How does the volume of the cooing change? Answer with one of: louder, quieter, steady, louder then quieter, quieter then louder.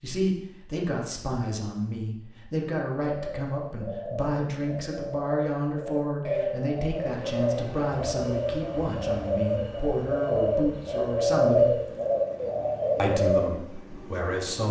louder.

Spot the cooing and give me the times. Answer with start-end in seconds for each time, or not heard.
3.0-13.4.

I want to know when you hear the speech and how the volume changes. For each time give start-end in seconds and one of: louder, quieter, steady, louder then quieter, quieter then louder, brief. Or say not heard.
0.0-11.8 steady
12.9-14.6 brief.